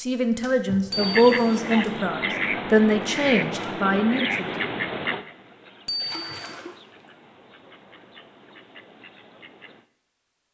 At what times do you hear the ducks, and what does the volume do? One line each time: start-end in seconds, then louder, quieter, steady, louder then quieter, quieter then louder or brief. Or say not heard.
0.9-9.8 quieter.